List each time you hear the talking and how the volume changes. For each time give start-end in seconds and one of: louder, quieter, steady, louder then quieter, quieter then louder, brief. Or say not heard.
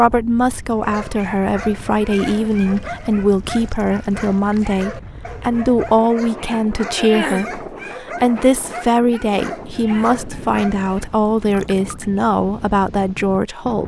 0.0-13.8 steady.